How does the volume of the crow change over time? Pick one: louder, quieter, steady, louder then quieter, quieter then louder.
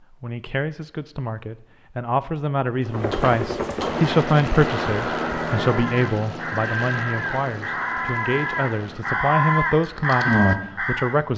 louder.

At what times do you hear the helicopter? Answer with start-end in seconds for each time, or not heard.
2.6-9.2.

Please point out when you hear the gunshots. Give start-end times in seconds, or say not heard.
3.8-5.8.